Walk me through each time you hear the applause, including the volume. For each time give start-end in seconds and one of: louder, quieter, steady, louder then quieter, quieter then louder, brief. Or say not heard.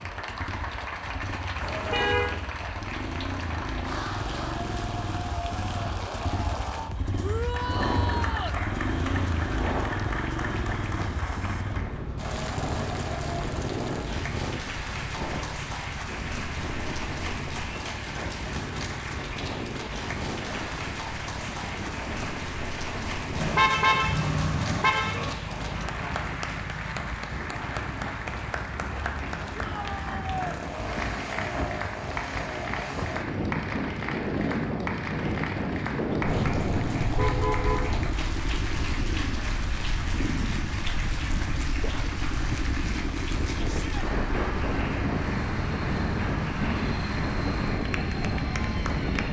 0.0-49.2 steady.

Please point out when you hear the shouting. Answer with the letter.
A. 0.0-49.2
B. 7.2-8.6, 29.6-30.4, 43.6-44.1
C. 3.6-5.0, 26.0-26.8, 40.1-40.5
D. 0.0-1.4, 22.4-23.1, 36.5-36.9
B.